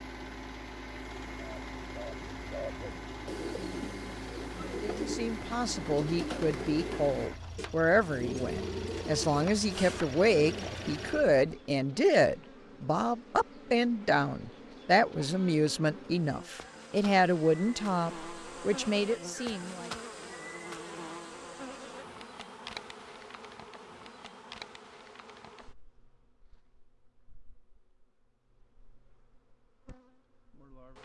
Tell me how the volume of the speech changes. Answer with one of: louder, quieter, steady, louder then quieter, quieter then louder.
steady.